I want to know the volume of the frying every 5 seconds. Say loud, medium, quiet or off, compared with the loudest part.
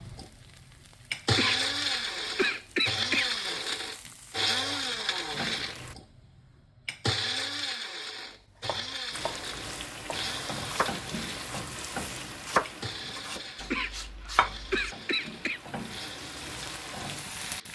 quiet, loud, loud, loud.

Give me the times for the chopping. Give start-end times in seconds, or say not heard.
8.4-11.7, 12.4-14.8.